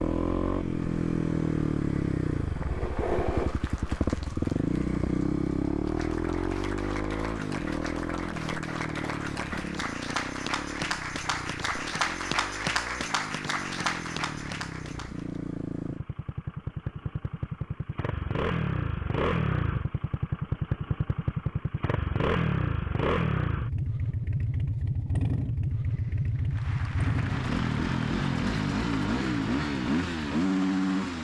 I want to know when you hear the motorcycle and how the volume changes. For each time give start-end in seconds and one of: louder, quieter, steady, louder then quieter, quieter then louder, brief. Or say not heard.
0.0-31.1 quieter then louder.